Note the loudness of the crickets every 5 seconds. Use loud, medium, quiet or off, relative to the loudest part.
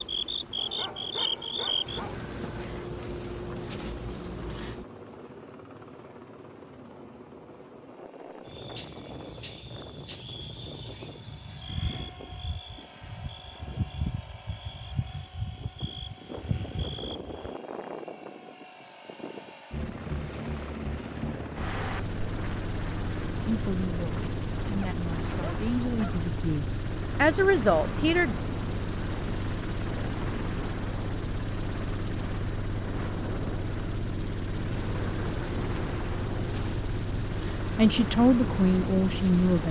loud, loud, medium, medium, loud, loud, loud, medium.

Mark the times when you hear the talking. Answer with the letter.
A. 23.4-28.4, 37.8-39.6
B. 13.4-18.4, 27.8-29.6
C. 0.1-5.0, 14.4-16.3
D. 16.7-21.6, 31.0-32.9
A.